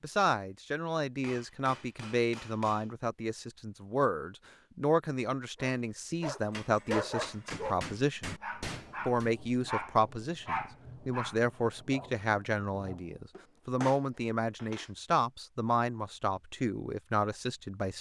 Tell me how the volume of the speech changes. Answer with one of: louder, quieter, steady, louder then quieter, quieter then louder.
steady.